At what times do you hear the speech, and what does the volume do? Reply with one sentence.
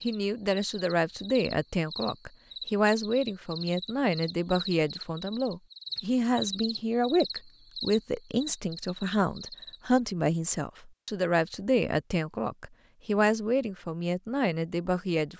You can hear the speech from 0.0 to 15.3 s, at a steady volume.